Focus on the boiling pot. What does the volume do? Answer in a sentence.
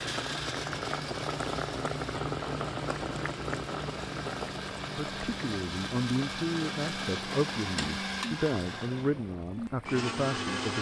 The volume of the boiling pot goes down.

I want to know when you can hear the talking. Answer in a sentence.
You can hear the talking from 5.0 to 10.7 s.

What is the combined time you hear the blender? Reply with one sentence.
You can hear the blender for 11 seconds altogether.